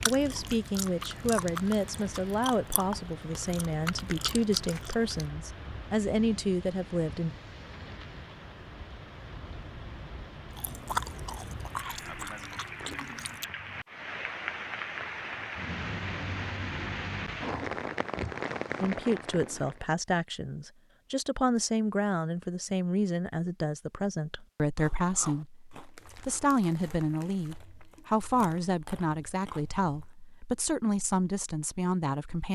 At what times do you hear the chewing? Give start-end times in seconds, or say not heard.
0.0-5.3, 10.5-13.4, 24.8-30.1.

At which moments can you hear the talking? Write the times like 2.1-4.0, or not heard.
0.1-7.3, 18.8-32.5.